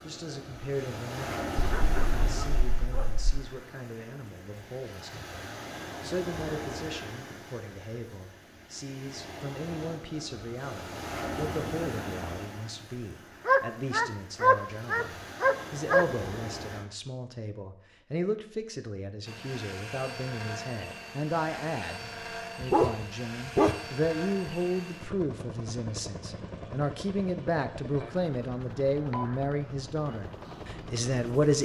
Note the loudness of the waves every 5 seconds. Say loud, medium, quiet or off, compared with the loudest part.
loud, loud, loud, loud, off, off, off.